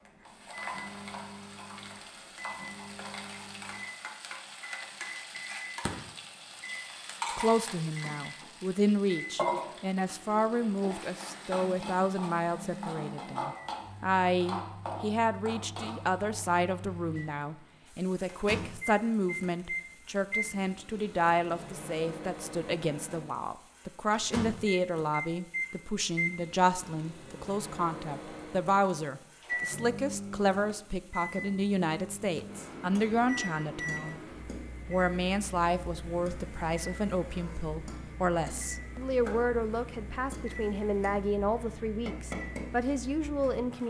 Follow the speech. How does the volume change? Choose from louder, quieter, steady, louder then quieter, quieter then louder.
steady.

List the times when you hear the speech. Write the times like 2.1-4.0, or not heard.
7.3-34.2, 34.9-43.8.